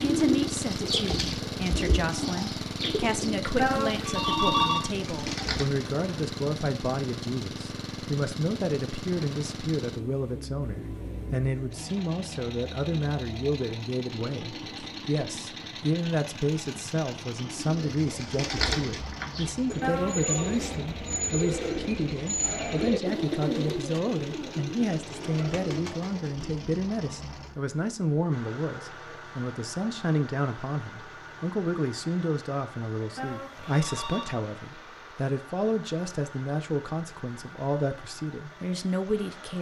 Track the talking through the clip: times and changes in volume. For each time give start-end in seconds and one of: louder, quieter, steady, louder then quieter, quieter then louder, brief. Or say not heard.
0.0-39.5 steady.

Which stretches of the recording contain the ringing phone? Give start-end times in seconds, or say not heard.
3.5-4.8, 19.8-20.5, 33.1-34.4.